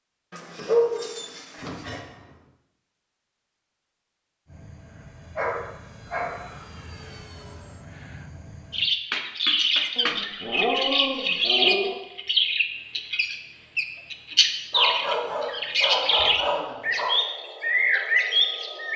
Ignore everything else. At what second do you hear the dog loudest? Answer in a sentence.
The loudest moment of the dog is at 1 second.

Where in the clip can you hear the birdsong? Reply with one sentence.
The birdsong can be heard from 8.7 to 18.9 s.